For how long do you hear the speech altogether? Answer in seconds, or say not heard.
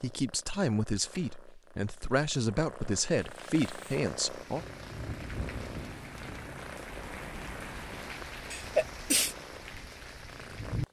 5 s.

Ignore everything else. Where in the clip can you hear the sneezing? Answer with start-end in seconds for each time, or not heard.
8.5-9.3.